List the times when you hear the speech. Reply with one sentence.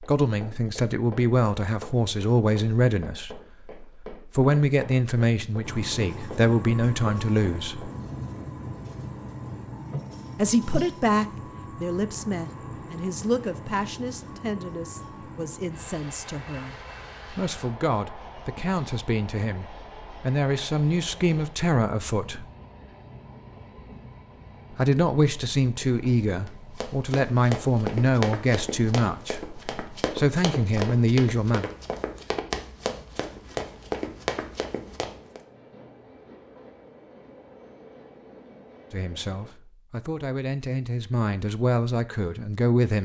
The speech can be heard from 0.0 to 7.9 s, from 10.3 to 22.4 s, from 24.8 to 31.6 s and from 38.9 to 43.0 s.